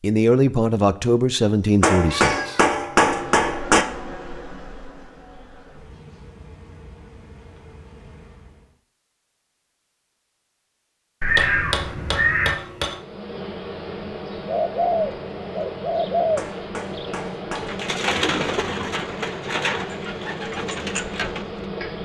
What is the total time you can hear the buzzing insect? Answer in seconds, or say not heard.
15 s.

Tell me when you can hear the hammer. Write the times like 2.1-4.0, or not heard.
1.8-3.9, 11.3-13.0, 16.4-17.9.